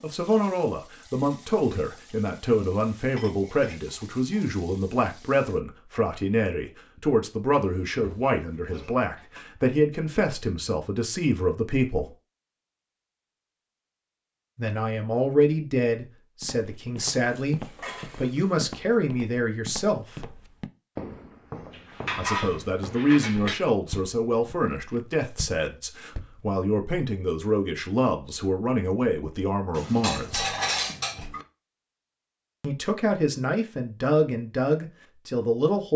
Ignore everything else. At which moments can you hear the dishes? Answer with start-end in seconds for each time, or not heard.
3.1-4.8, 7.5-9.4, 16.9-18.6, 21.7-23.6, 29.7-31.4.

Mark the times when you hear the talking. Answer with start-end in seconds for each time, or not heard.
0.0-12.1, 14.6-20.2, 22.1-30.4, 32.6-35.9.